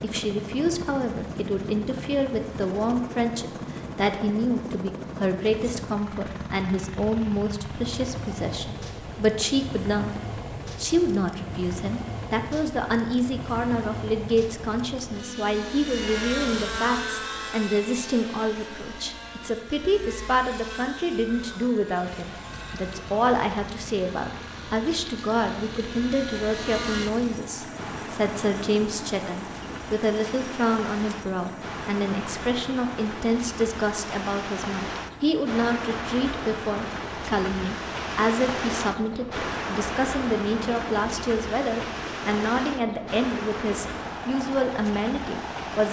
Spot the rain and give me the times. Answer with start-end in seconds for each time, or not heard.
22.0-45.8.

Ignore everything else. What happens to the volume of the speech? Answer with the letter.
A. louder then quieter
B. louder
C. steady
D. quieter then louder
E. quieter
C.